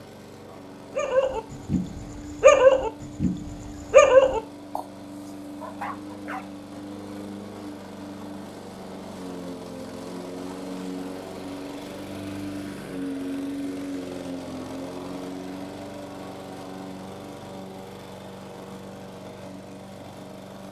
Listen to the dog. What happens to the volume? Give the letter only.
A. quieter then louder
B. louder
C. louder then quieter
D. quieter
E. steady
C.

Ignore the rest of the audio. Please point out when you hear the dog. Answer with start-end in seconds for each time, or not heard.
0.9-6.5.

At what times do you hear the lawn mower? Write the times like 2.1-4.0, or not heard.
0.0-20.6.